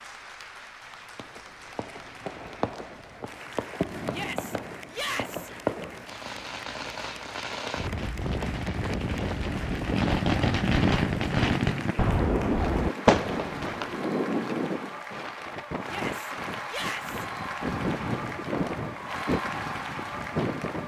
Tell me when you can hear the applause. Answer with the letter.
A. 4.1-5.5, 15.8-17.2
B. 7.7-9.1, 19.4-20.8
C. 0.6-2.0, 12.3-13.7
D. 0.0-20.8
D.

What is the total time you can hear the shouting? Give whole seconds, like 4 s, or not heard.
3 s.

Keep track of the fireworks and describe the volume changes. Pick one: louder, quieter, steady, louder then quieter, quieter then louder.
louder.